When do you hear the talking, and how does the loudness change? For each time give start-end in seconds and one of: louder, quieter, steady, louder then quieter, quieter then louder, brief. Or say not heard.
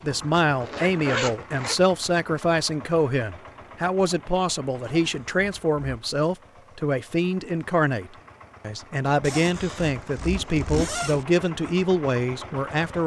0.0-13.0 steady.